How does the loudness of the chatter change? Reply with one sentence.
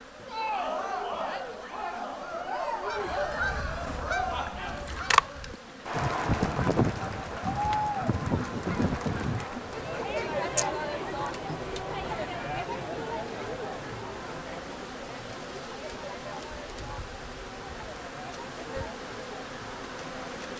The volume of the chatter goes down.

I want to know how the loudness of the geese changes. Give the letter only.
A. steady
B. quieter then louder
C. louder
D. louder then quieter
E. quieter
D.